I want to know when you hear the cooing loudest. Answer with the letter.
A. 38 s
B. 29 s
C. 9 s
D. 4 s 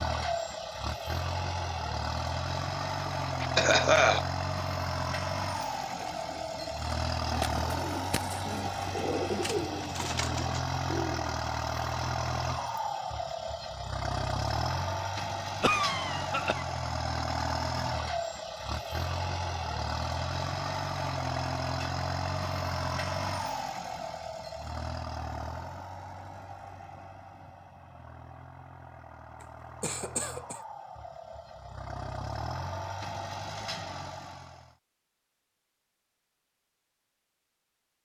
C.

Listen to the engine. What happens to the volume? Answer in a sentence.
The volume of the engine goes down.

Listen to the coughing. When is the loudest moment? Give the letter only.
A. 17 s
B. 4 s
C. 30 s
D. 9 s
B.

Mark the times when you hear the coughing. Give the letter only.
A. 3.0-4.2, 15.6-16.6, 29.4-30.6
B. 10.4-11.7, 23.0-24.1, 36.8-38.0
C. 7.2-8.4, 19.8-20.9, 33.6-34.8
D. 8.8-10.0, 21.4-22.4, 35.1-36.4
A.